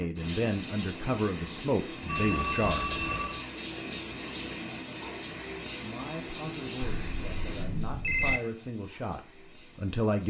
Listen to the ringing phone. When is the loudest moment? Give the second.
8 s.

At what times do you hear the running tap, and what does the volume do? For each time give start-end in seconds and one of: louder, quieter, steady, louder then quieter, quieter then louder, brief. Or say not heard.
0.0-10.2 quieter.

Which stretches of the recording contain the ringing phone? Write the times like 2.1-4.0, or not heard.
2.0-3.4, 6.9-8.4.